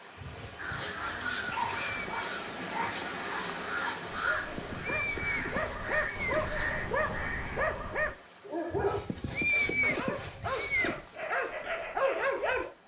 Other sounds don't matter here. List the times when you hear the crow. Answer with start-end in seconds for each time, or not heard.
0.6-7.6.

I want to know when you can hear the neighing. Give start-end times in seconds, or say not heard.
1.4-2.2, 4.5-6.5, 9.1-11.1.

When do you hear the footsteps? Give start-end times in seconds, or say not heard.
not heard.